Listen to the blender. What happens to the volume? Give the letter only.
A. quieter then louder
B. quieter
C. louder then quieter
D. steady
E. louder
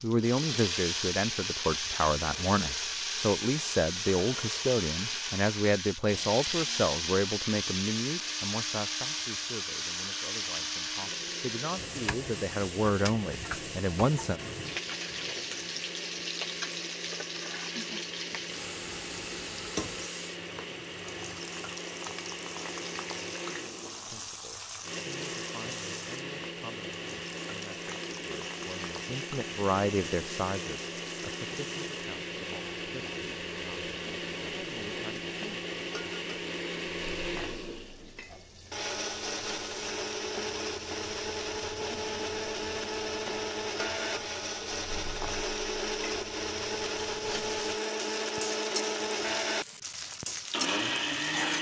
E.